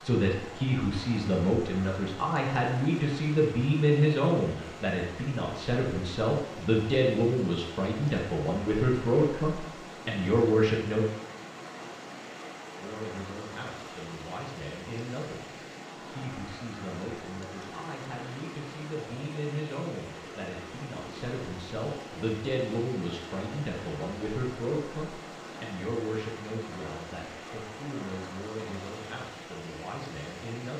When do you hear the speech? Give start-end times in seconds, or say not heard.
0.0-11.1, 12.8-30.7.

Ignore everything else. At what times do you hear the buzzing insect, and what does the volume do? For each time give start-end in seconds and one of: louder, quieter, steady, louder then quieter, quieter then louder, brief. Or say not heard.
not heard.